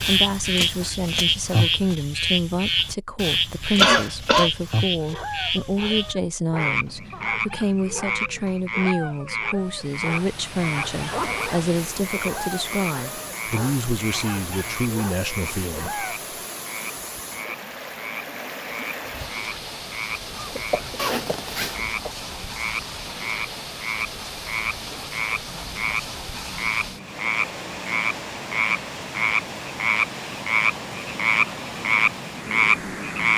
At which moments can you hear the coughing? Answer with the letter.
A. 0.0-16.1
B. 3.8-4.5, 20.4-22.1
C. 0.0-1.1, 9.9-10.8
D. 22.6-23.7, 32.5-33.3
B.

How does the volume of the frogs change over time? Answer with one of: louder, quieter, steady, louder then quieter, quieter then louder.
quieter then louder.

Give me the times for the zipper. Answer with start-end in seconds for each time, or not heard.
11.1-12.2, 20.9-21.8.